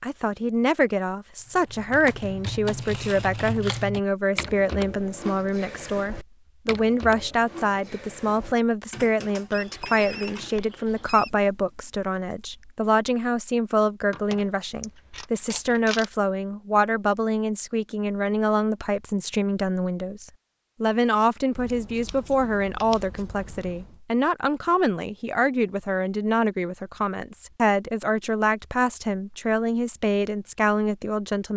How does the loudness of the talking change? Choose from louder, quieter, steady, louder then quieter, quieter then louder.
steady.